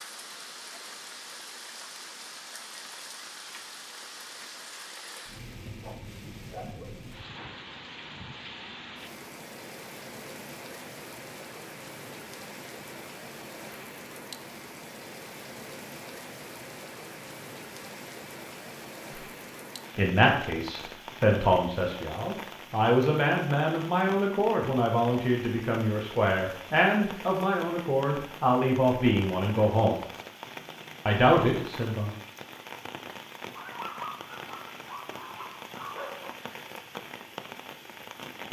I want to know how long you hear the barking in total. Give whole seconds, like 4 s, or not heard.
4 s.